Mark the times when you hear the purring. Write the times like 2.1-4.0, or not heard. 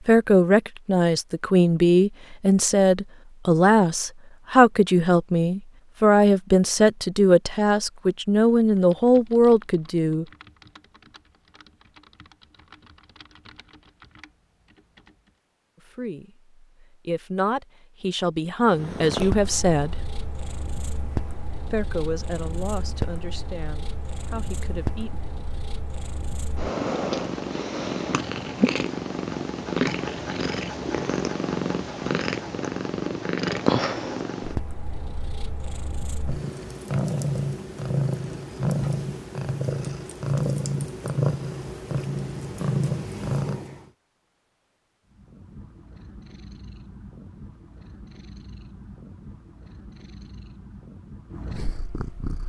18.6-43.9, 45.0-52.4.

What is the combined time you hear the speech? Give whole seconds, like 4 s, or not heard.
18 s.